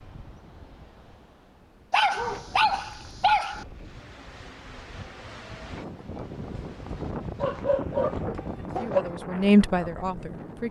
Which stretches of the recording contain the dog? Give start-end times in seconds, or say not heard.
1.9-3.6, 7.4-9.1.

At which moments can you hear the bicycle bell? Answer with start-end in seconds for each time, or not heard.
not heard.